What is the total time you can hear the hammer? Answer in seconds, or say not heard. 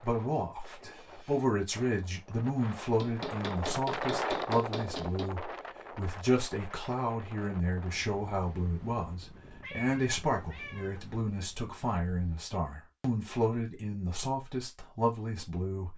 2 s.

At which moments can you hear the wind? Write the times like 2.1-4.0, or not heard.
0.0-12.4.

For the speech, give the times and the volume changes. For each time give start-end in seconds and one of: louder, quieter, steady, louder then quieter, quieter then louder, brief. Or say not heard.
0.0-15.9 steady.